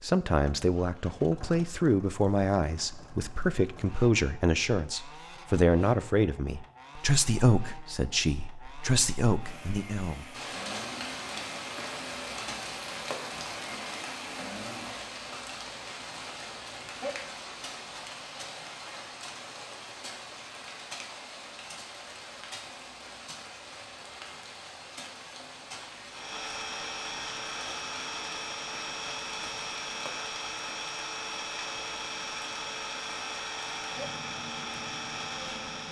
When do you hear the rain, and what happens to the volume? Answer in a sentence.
You can hear the rain from 10.3 to 35.8 s, getting quieter.